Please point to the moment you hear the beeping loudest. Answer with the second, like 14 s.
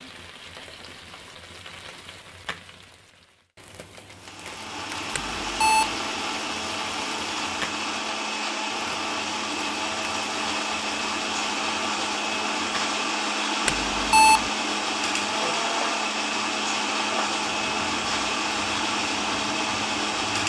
14 s.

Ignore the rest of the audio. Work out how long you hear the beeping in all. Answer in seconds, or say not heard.
2 s.